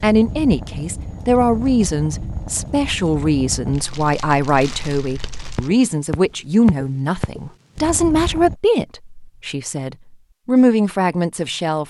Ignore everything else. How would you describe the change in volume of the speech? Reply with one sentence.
The loudness of the speech stays about the same.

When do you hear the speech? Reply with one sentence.
You can hear the speech from 0.0 to 11.8 s.